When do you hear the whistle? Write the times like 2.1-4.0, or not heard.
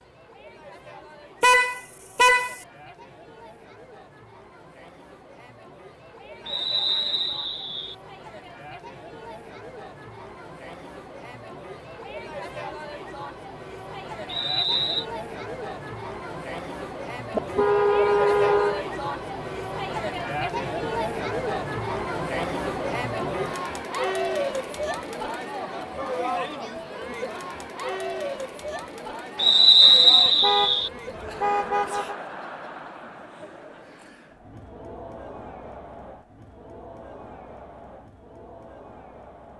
6.5-8.0, 14.2-15.1, 29.4-30.9.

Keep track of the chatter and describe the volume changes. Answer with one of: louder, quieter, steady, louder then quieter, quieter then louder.
louder then quieter.